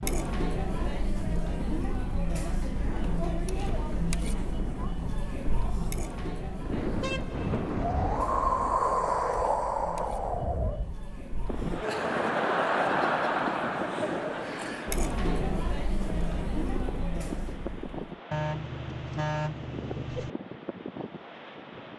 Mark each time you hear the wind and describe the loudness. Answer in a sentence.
You can hear the wind from 0.0 to 21.9 s, getting louder then quieter.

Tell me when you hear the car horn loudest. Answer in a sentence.
The volume of the car horn peaks at 19 seconds.